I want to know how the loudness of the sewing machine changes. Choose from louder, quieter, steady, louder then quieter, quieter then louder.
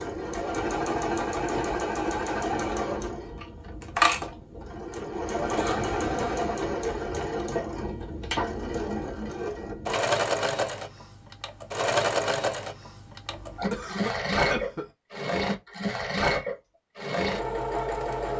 steady.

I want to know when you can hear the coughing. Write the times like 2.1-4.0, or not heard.
5.5-6.2, 13.2-14.9.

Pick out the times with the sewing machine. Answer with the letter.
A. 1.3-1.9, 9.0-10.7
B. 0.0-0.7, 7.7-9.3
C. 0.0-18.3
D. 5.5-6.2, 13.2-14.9
C.